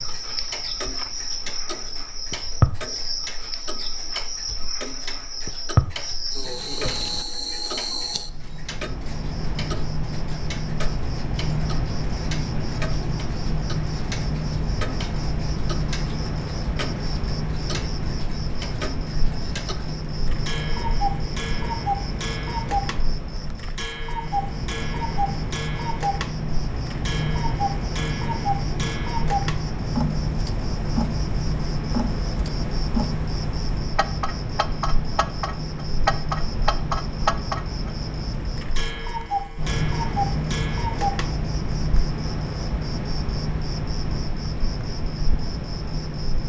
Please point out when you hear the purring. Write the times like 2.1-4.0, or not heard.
not heard.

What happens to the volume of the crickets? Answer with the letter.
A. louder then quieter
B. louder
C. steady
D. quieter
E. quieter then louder
C.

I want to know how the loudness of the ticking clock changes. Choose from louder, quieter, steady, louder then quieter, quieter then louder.
louder.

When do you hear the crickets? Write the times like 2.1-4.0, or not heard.
0.0-46.4.